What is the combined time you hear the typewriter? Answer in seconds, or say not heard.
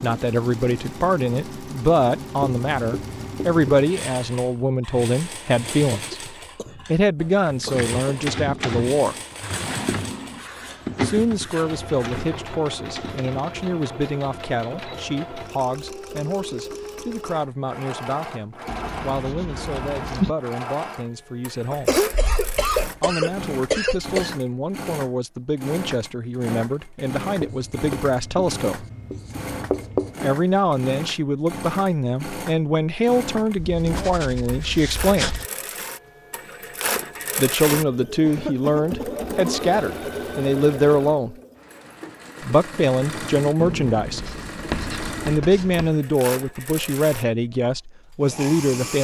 6 s.